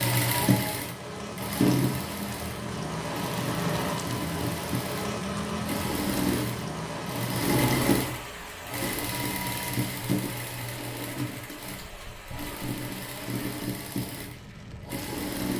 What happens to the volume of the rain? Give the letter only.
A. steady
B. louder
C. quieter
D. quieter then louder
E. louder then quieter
C.